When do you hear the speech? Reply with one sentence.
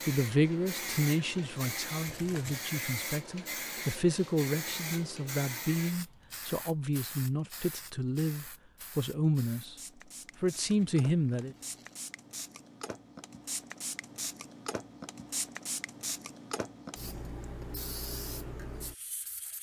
The speech can be heard from 0.1 to 9.8 s and from 10.4 to 11.6 s.